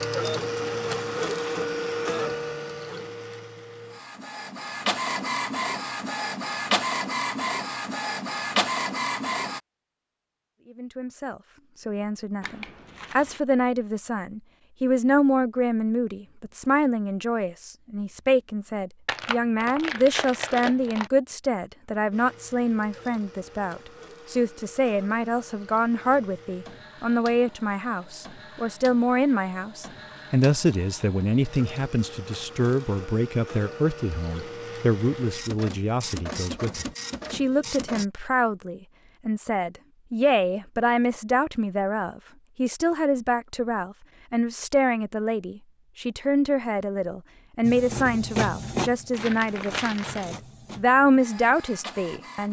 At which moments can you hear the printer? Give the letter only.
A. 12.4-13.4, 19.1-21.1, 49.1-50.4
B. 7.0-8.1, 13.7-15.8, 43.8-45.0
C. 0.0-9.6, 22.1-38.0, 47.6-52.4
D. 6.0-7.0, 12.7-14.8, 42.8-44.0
C.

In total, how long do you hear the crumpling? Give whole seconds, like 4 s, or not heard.
4 s.